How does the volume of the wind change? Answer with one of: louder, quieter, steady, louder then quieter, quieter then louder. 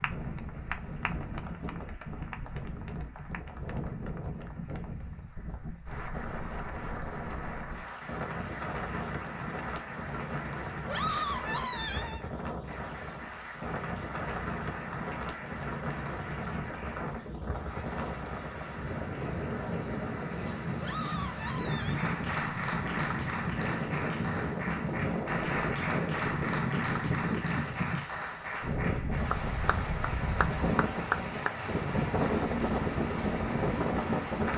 louder.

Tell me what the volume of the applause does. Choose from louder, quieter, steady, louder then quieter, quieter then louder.
louder.